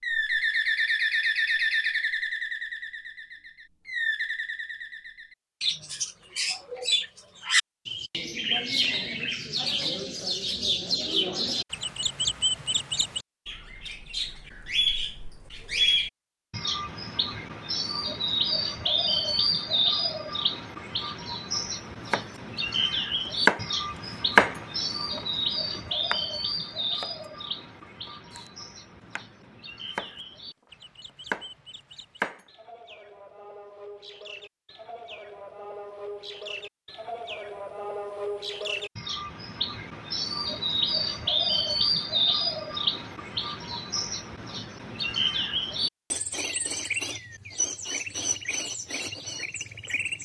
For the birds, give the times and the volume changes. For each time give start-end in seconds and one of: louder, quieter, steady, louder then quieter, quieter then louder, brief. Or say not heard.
0.0-50.1 quieter then louder.